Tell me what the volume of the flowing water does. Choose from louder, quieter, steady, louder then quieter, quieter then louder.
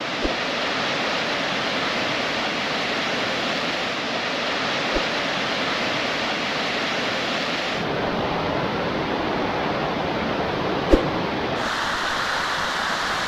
steady.